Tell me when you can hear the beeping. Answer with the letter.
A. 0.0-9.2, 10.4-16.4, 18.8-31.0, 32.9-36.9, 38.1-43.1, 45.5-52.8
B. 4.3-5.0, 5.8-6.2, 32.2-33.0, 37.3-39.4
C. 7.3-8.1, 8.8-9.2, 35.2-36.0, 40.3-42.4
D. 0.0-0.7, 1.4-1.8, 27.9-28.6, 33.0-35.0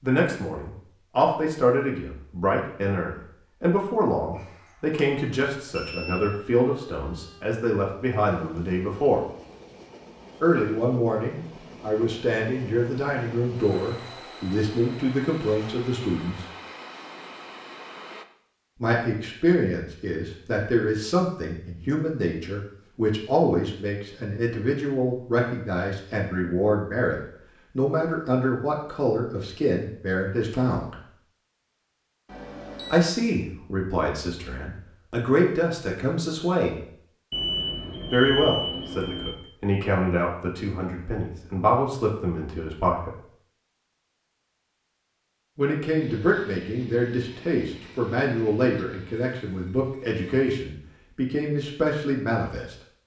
B.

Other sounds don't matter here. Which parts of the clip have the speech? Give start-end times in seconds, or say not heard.
0.0-9.2, 10.4-16.4, 18.8-31.0, 32.9-36.9, 38.1-43.1, 45.5-52.8.